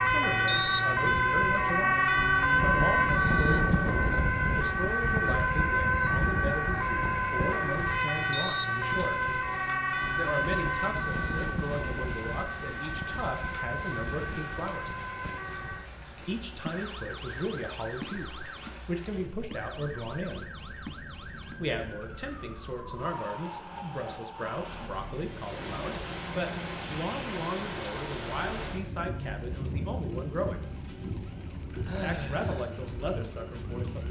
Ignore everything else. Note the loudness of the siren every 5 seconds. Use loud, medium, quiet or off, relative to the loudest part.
loud, loud, medium, quiet, quiet, quiet, quiet.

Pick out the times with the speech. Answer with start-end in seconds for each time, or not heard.
0.0-9.3, 10.2-14.9, 16.2-20.5, 21.6-30.6, 32.0-34.0.